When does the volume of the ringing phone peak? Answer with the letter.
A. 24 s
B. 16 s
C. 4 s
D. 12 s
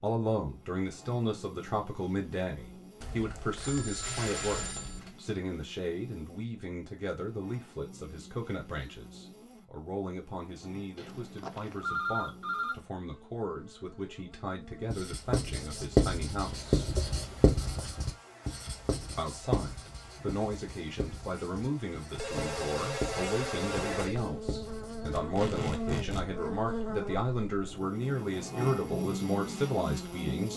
D.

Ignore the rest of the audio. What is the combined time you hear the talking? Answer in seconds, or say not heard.
28 s.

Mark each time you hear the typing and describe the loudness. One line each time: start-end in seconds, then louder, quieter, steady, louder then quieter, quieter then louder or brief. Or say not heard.
not heard.